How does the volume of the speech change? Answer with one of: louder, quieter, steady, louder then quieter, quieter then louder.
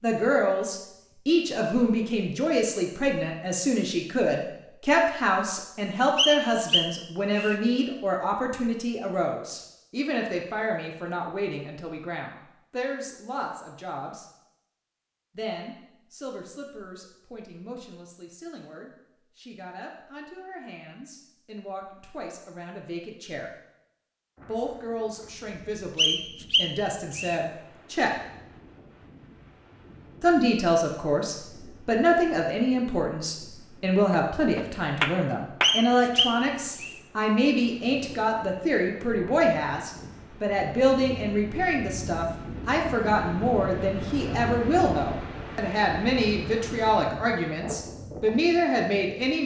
quieter then louder.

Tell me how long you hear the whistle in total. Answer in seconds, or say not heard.
4 s.